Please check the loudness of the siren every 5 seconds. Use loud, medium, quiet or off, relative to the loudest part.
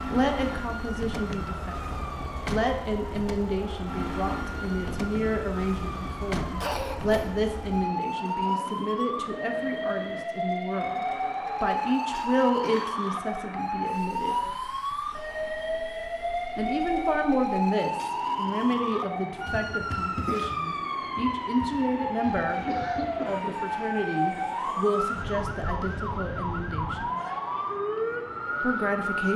medium, loud, loud, loud, loud, loud.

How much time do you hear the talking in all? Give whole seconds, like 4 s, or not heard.
26 s.